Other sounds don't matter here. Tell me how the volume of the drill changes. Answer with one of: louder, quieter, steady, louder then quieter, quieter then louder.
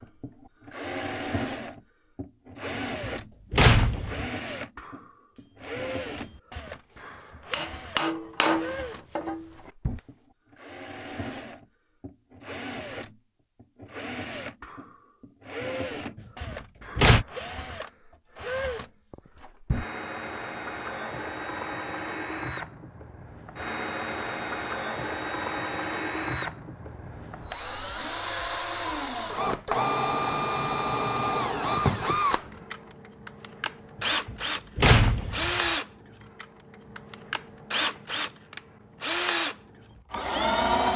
louder.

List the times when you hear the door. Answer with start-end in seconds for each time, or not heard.
3.0-4.3, 16.4-17.2, 34.2-35.7.